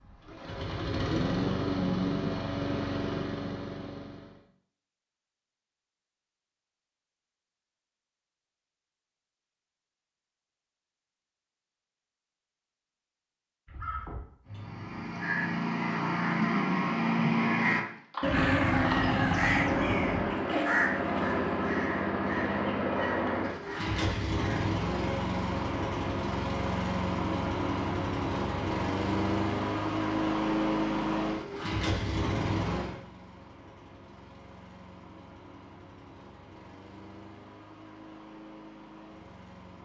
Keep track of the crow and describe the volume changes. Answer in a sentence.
The loudness of the crow goes up, then down.